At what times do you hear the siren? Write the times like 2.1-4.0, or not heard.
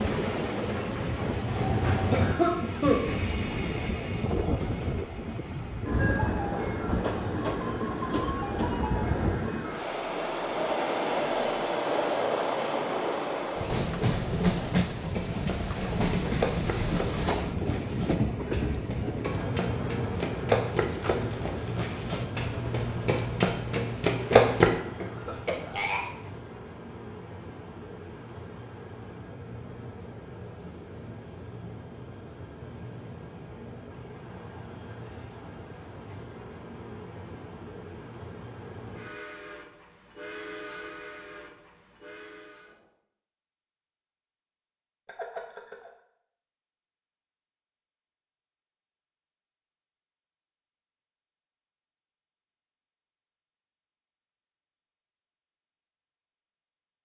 not heard.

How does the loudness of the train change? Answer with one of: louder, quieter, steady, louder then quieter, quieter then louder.
quieter.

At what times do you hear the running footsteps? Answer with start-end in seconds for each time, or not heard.
15.1-24.7.